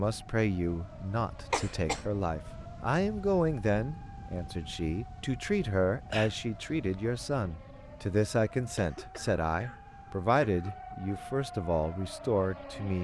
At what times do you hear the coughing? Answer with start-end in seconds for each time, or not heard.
1.5-2.0, 6.1-7.0, 8.8-10.8.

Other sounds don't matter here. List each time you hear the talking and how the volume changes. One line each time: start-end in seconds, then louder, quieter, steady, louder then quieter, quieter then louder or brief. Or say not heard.
0.0-12.9 steady.